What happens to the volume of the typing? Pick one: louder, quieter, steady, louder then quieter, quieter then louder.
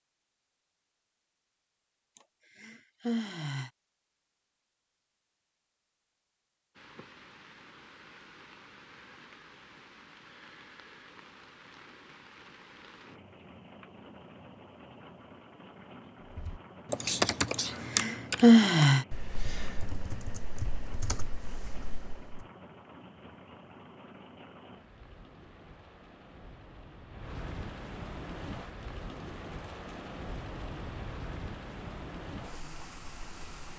quieter.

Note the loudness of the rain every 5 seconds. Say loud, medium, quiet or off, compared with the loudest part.
off, medium, medium, medium, medium, loud, loud.